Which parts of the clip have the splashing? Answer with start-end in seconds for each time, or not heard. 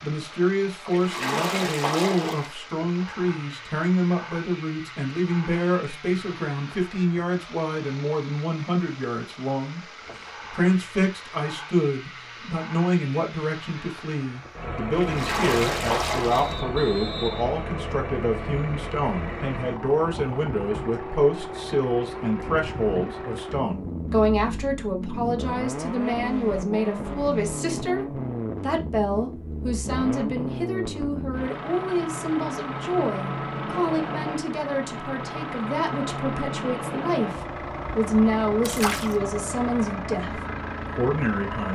0.8-2.5, 14.9-16.6, 38.6-39.2.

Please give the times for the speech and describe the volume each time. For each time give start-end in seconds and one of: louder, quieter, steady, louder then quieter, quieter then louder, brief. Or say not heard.
0.0-9.8 steady
10.5-41.7 steady.